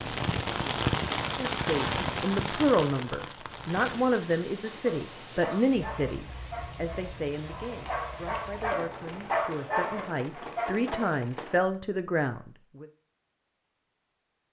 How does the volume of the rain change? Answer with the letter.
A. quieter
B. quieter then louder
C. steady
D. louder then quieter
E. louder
A.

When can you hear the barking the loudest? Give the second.
9 s.